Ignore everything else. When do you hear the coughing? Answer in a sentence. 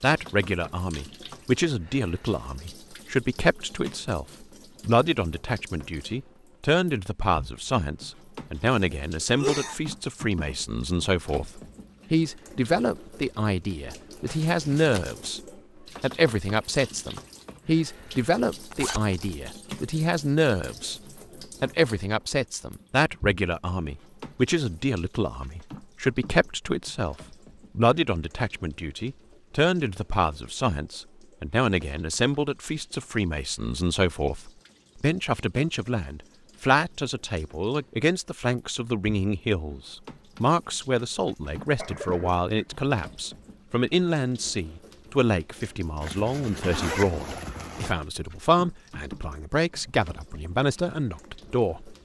The coughing can be heard from 8.6 to 9.8 s and from 41.6 to 42.6 s.